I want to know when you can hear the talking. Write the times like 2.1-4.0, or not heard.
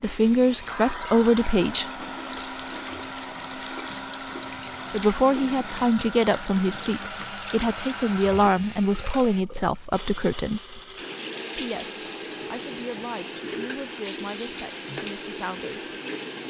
0.0-1.9, 4.9-10.8, 11.6-15.9.